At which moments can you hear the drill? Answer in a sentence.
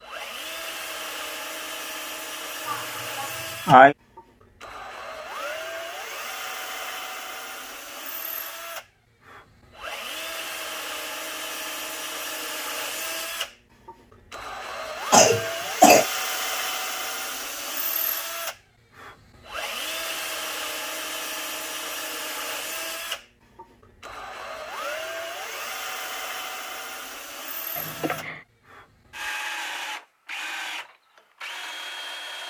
You can hear the drill from 0.0 to 32.4 s.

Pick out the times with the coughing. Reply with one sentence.
The coughing can be heard from 2.6 to 4.0 s, from 15.1 to 16.1 s and from 27.8 to 28.4 s.